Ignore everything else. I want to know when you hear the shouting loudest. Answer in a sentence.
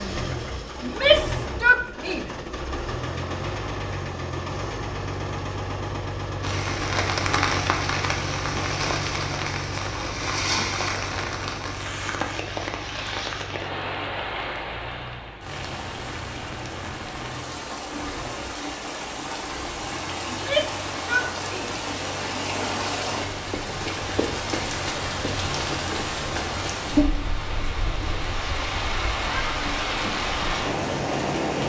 The loudest moment of the shouting is at 1 second.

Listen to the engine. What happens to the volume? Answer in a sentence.
The volume of the engine goes down.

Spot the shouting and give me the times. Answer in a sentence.
You can hear the shouting from 0.8 to 2.3 s and from 20.2 to 21.8 s.